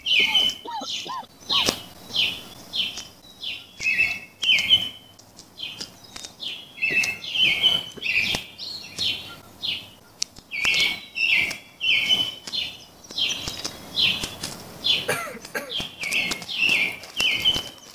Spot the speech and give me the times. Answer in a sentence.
You can't hear the speech here.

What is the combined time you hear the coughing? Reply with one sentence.
You can hear the coughing for 4 seconds altogether.